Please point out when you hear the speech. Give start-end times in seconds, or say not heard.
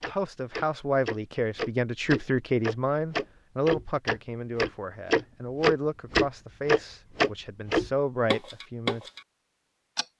0.0-9.0.